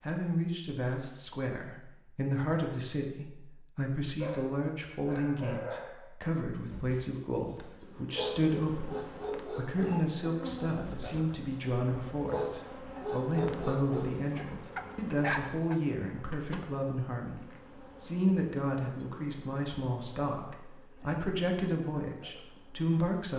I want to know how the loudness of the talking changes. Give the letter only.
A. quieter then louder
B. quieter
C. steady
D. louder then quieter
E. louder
C.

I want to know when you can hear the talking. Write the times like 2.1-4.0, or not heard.
0.0-23.3.